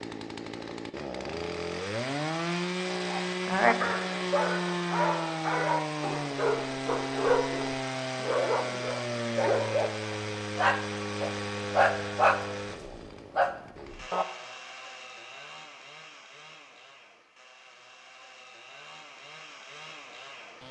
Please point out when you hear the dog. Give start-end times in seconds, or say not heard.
3.1-14.2.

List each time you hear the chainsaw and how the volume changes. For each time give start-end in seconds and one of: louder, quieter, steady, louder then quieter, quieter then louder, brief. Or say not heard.
0.0-20.6 quieter.